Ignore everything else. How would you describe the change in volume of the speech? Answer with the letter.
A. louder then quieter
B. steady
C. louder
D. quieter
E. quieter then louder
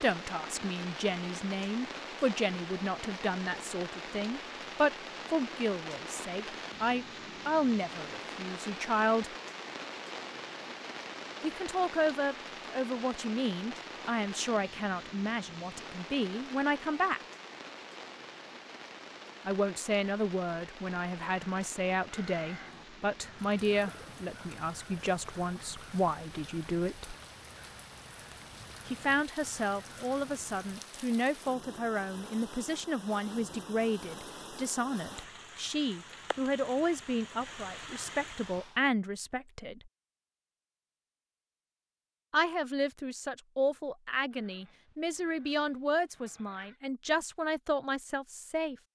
B.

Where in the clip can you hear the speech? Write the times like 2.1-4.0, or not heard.
0.0-9.3, 11.4-17.2, 19.4-27.1, 28.9-39.8, 42.3-48.8.